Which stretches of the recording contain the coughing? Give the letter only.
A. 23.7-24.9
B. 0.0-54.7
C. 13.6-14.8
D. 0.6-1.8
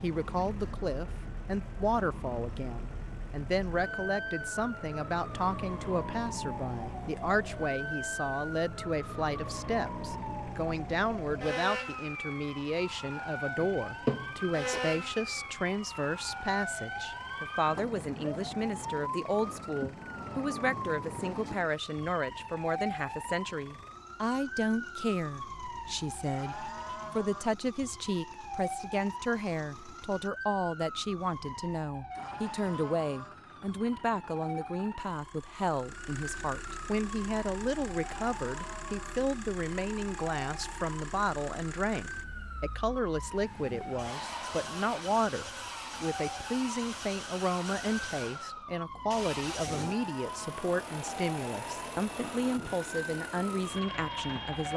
C.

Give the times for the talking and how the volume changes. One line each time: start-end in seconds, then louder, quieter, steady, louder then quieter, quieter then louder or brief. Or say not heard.
0.0-54.7 steady.